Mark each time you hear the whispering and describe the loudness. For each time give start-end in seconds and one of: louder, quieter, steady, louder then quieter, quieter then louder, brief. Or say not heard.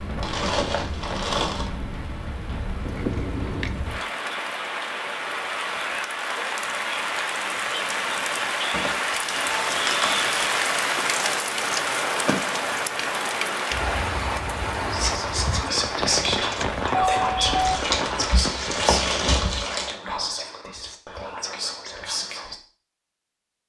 14.9-22.6 quieter.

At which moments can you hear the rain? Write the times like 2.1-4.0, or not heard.
0.0-19.4.